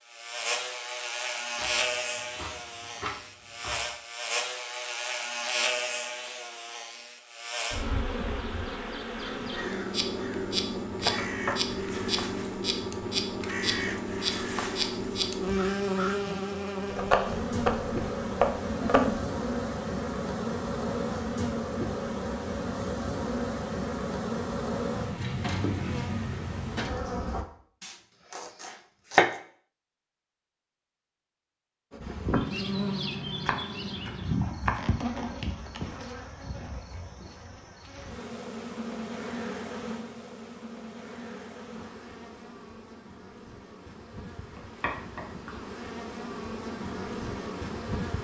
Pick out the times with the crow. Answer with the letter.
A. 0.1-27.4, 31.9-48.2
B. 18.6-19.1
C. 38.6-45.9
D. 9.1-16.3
D.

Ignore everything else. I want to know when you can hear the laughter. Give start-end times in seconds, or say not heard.
18.6-19.1.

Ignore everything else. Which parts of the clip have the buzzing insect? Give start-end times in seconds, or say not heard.
0.1-27.4, 31.9-48.2.